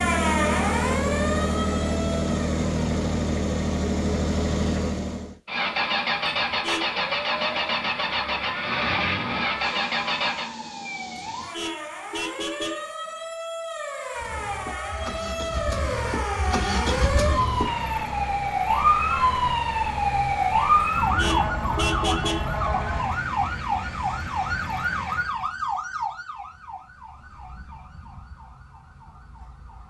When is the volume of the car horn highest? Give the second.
22 s.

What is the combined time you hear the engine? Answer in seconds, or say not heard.
22 s.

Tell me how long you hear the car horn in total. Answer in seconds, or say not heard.
4 s.